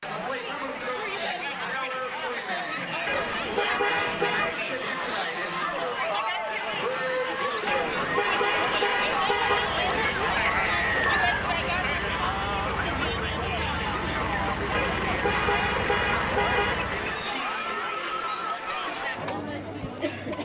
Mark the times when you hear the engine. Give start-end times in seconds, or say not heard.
9.2-17.4.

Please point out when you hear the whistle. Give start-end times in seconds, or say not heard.
10.4-11.4.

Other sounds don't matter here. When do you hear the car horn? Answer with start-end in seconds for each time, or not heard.
3.0-4.5, 7.7-9.7, 14.7-16.8.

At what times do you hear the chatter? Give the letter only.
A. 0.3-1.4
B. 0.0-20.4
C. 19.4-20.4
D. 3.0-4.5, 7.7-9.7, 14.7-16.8
B.